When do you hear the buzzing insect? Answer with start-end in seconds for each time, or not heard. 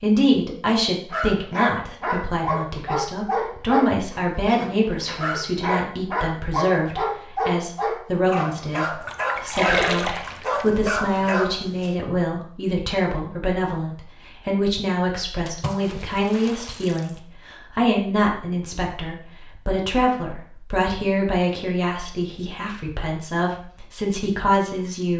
not heard.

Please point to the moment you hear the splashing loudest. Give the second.
10 s.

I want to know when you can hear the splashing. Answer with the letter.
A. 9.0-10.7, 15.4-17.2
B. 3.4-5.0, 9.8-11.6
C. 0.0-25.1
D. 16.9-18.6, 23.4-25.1
A.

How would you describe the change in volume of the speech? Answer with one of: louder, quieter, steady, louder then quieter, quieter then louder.
steady.